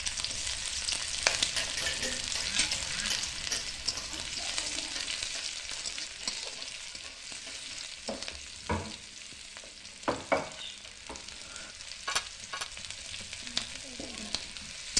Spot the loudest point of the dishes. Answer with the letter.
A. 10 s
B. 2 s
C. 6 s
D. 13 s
A.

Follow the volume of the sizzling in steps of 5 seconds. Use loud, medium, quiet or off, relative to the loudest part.
loud, medium, medium.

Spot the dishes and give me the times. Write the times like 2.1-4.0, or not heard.
1.1-12.7.